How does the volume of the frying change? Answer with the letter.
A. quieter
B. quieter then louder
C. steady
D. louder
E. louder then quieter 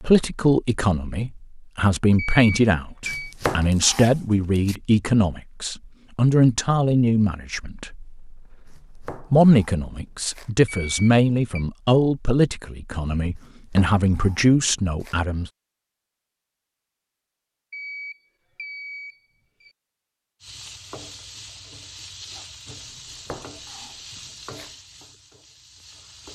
A.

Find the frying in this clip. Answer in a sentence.
The frying can be heard from 20.4 to 26.3 s.